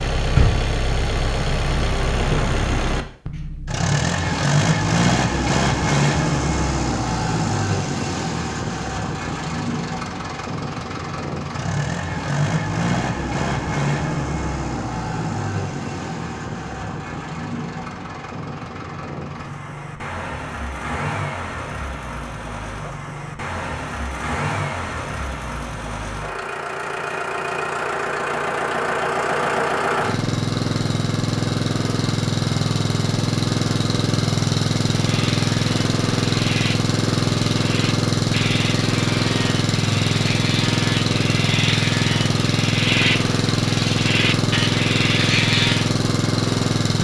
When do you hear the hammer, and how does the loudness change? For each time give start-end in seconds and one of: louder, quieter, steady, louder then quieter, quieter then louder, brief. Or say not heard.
not heard.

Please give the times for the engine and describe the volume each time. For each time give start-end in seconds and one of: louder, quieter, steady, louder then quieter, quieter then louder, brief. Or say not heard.
0.0-46.9 quieter then louder.